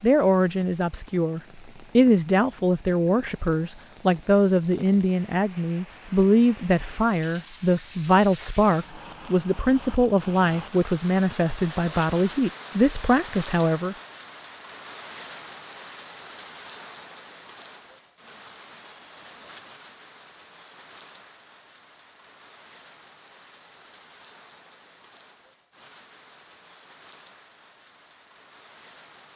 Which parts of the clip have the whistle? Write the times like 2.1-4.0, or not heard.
not heard.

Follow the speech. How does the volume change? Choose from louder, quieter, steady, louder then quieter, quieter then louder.
steady.